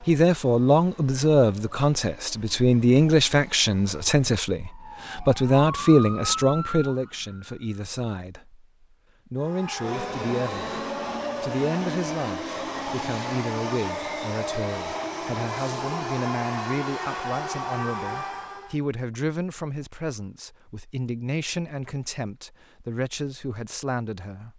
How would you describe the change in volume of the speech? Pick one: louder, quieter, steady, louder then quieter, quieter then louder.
quieter.